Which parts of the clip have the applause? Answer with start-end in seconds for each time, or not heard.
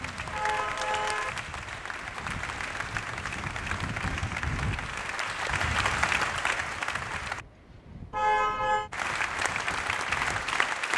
0.0-7.5, 8.9-10.9.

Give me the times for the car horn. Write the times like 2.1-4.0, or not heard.
0.3-1.4, 8.1-8.9.